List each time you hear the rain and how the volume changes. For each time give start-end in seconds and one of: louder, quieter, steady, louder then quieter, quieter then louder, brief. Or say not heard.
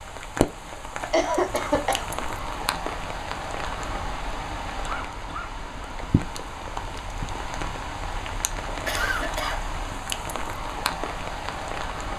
0.0-12.1 steady.